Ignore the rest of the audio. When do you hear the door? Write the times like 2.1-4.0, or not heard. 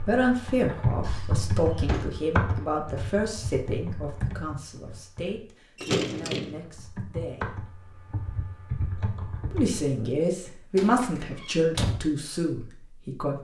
1.1-2.1, 5.8-6.6, 10.8-12.0.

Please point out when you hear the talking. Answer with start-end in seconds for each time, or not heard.
0.0-7.6, 9.5-13.4.